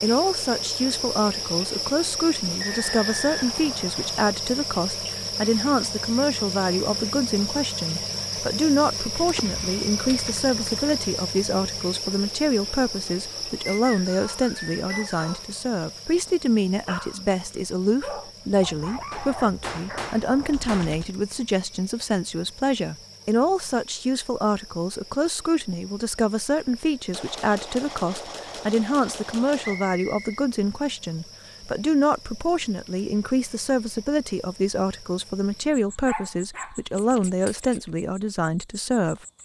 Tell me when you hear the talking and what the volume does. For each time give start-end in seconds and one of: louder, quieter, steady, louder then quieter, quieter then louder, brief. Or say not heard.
0.0-39.2 steady.